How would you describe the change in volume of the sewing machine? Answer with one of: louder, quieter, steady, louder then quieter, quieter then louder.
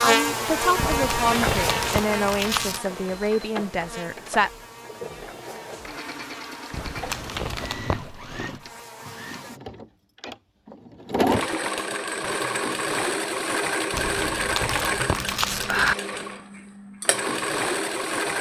louder.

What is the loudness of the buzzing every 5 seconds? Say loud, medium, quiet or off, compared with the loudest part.
loud, quiet, off, off.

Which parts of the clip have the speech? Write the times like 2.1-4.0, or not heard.
0.0-4.5.